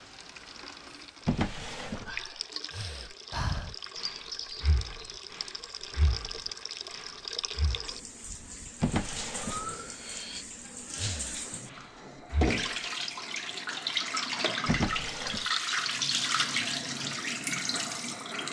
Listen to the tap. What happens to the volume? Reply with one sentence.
The volume of the tap goes up.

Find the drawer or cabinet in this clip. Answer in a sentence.
The drawer or cabinet can be heard from 1.2 to 2.3 s, from 8.8 to 9.7 s and from 14.7 to 15.4 s.